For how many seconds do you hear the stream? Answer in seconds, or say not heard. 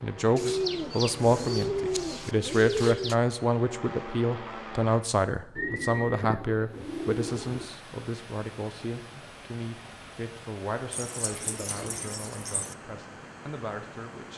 8 s.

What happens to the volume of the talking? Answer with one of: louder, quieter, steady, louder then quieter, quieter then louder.
quieter.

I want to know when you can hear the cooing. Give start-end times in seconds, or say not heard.
0.3-3.1, 5.5-7.7, 10.9-12.8.